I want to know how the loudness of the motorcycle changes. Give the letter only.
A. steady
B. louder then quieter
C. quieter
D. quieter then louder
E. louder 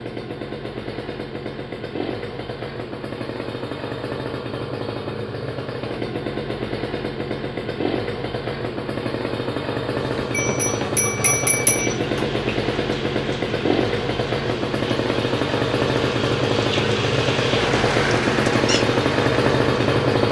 E.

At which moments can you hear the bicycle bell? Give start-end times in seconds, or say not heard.
10.3-12.3.